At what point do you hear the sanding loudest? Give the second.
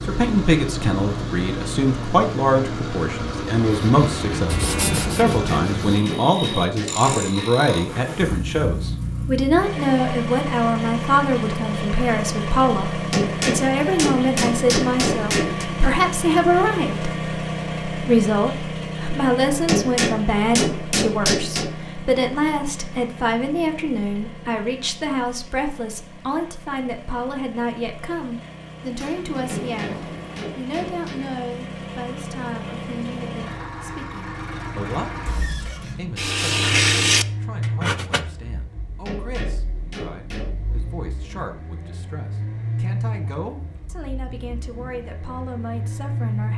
37 s.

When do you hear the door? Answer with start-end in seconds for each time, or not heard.
28.9-30.4.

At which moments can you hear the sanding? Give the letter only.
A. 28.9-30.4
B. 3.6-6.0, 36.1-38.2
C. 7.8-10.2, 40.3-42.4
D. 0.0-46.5
B.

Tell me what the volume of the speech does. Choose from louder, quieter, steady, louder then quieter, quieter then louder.
quieter.